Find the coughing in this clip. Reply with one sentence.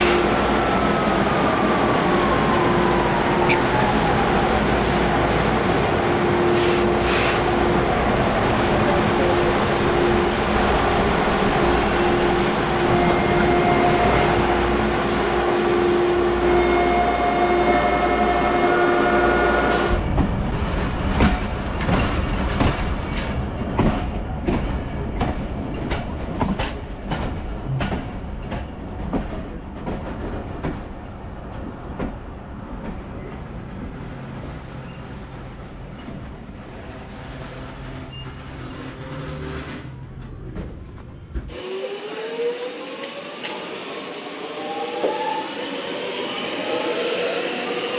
You can hear the coughing from 2.6 to 3.6 s.